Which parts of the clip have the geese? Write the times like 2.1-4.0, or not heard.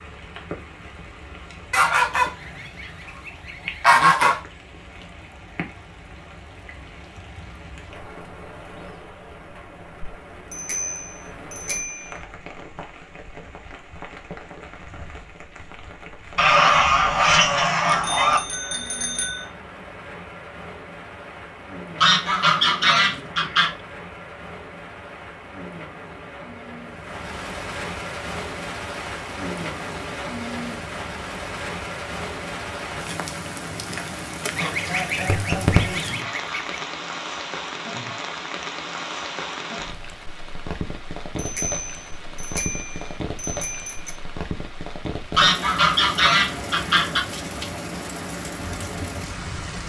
1.7-4.4, 16.4-18.4, 22.0-23.8, 34.5-36.8, 45.4-47.2.